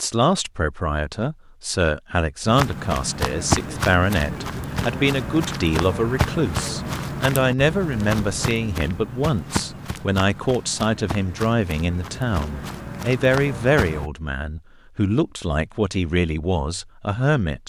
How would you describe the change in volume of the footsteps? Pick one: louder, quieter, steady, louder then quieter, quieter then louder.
quieter.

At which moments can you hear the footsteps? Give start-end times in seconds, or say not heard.
2.5-14.1.